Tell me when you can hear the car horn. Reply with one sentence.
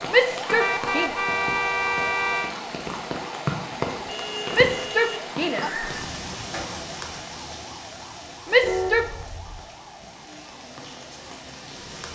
You can hear the car horn from 0.5 to 2.5 s, from 4.0 to 5.7 s and from 8.6 to 9.7 s.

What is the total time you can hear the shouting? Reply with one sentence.
The shouting can be heard for 3 seconds in total.